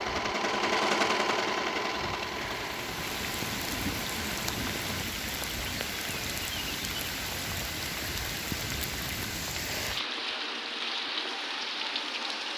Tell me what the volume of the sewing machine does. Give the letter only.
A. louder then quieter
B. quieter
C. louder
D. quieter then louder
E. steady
B.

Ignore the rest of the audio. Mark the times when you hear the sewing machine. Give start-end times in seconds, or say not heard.
0.0-5.0.